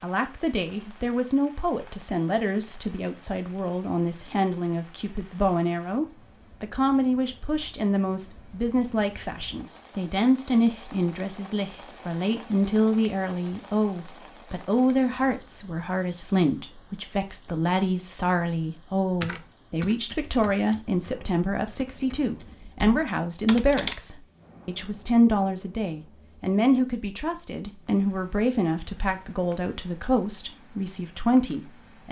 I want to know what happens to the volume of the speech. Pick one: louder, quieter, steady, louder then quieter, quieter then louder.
steady.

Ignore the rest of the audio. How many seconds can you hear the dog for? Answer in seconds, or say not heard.
not heard.